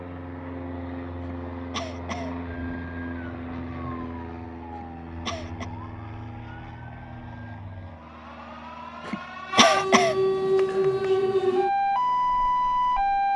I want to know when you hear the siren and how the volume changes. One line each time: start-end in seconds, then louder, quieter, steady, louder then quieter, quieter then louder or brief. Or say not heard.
2.4-13.3 louder.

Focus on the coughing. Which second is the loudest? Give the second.
10 s.